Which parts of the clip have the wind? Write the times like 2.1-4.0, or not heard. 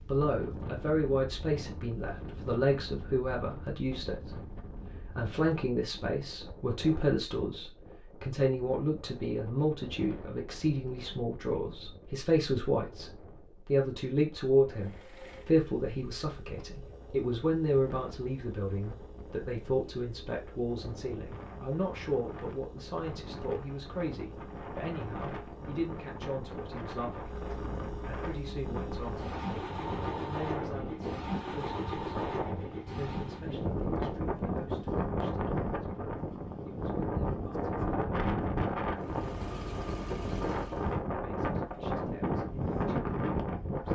0.0-43.8.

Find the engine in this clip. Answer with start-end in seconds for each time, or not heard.
14.7-33.5, 39.0-41.0.